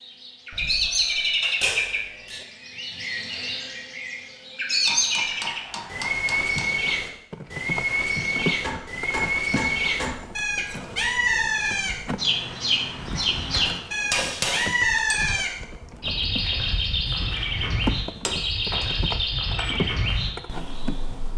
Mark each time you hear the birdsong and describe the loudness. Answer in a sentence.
The birdsong can be heard from 0.0 to 21.3 s, at a steady volume.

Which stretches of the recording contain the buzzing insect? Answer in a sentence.
You can hear the buzzing insect from 7.3 to 21.3 s.